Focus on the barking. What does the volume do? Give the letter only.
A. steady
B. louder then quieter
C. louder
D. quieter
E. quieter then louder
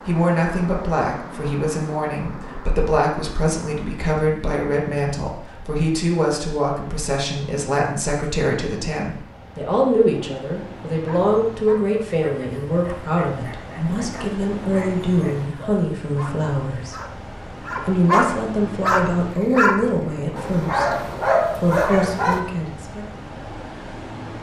C.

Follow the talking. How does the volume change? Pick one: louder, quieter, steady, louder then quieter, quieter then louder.
steady.